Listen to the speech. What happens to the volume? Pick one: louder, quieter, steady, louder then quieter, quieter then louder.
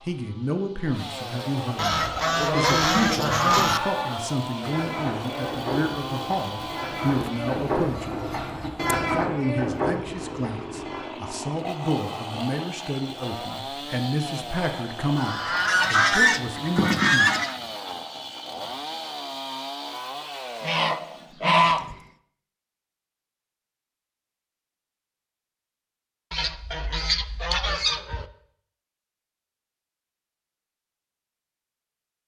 steady.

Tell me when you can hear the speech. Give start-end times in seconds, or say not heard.
0.0-8.2, 9.1-17.3.